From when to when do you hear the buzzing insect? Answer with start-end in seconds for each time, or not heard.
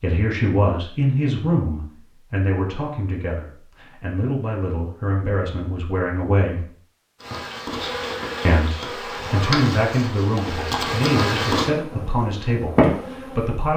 7.2-13.7.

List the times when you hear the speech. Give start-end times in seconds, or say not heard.
0.0-6.7, 8.4-13.7.